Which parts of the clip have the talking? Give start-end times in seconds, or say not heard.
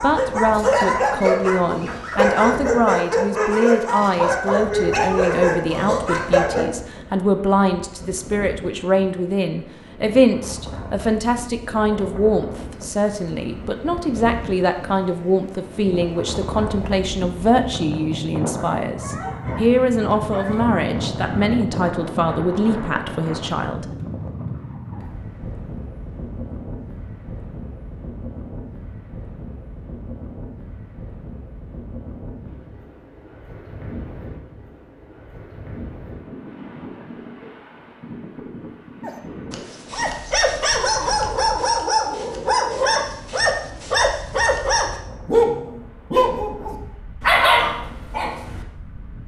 0.0-23.9.